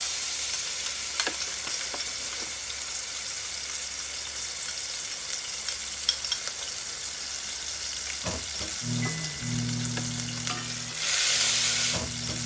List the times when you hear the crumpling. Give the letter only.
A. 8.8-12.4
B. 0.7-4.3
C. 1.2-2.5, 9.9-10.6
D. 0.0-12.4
C.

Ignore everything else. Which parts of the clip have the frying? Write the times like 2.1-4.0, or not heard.
0.0-12.4.